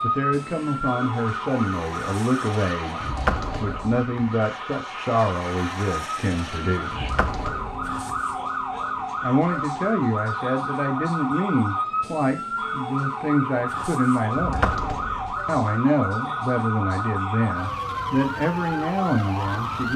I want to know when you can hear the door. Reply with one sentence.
The door can be heard from 3.0 to 4.3 s, from 6.9 to 8.2 s and from 14.3 to 15.6 s.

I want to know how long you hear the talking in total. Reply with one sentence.
You can hear the talking for 17 seconds altogether.